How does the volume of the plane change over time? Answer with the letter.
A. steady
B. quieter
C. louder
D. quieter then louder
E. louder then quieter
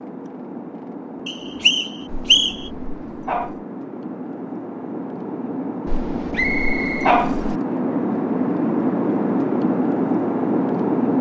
C.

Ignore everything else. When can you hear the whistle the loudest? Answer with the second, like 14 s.
2 s.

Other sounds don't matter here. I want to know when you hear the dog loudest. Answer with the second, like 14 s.
7 s.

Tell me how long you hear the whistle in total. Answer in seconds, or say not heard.
2 s.